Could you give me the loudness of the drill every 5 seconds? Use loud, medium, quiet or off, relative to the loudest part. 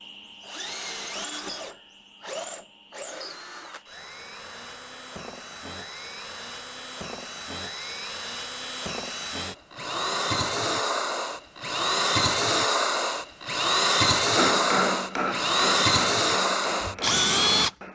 quiet, quiet, loud, loud.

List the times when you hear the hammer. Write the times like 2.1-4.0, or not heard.
14.3-17.9.